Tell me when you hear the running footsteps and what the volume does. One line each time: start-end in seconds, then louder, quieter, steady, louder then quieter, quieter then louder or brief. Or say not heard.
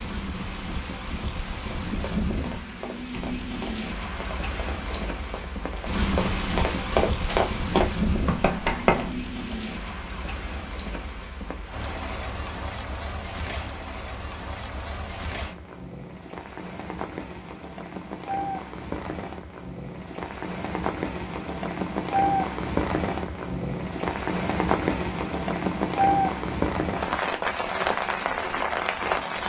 1.9-9.6 louder.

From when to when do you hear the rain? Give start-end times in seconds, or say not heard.
0.0-29.4.